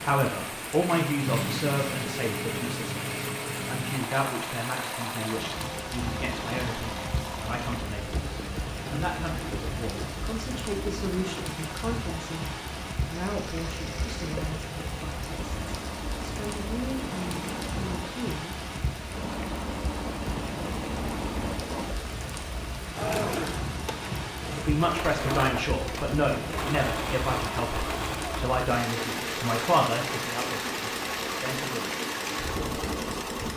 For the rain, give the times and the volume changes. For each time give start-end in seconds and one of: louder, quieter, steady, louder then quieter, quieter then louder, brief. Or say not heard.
0.0-33.5 steady.